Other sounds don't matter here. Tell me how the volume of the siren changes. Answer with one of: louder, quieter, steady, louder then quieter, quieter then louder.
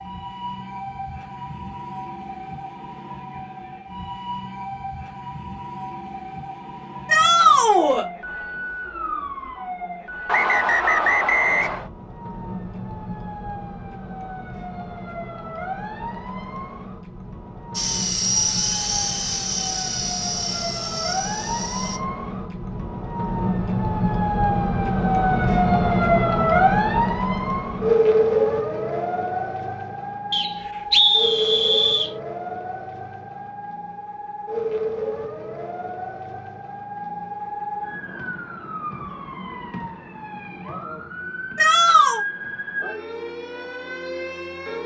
louder then quieter.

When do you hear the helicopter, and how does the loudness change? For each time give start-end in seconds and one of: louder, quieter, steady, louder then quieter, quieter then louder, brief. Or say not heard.
17.8-22.0 quieter.